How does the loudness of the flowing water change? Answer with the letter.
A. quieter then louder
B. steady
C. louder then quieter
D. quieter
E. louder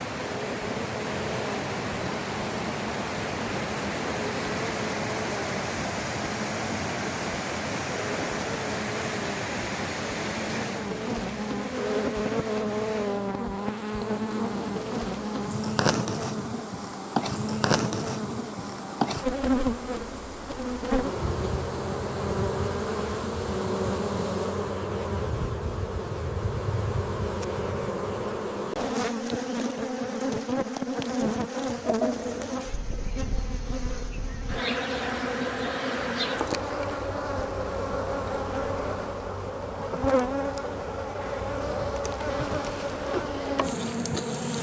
D.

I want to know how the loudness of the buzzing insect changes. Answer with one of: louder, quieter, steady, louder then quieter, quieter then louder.
louder.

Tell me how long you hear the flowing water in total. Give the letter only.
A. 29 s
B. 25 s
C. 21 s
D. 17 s
B.